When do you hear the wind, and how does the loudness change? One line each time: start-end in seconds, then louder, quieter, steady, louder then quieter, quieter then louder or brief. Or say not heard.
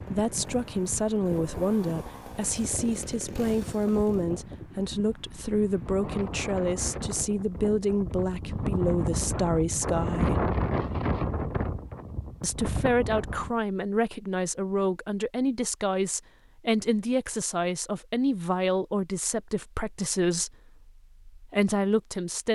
0.0-13.6 louder.